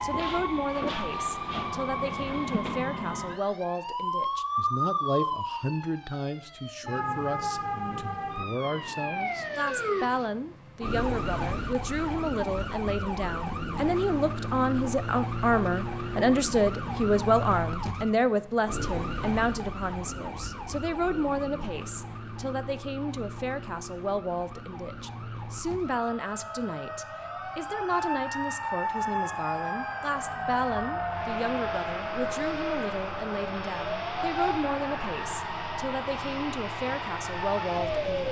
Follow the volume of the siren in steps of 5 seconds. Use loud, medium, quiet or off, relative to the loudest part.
loud, loud, loud, loud, medium, loud, loud, loud.